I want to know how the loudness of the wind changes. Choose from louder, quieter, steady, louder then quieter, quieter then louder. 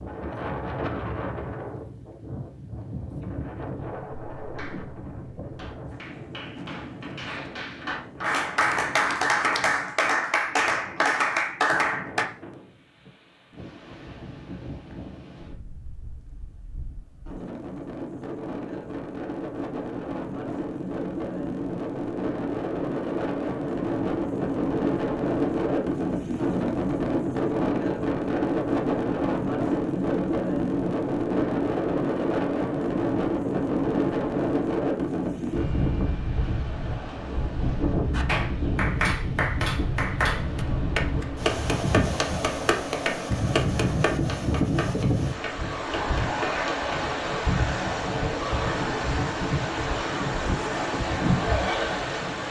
louder.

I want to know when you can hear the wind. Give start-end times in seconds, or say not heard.
0.0-52.4.